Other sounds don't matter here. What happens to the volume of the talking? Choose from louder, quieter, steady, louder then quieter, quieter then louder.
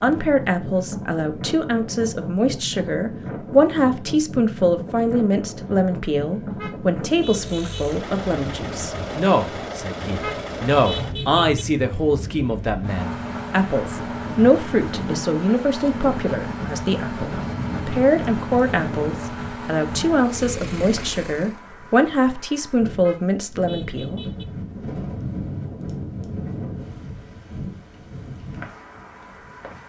steady.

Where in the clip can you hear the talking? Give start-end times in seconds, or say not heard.
0.0-24.2.